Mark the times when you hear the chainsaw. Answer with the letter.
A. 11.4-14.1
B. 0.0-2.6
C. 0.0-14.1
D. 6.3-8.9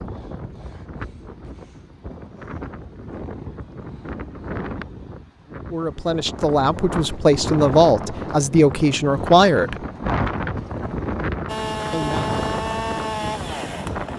A.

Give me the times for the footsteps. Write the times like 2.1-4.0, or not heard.
not heard.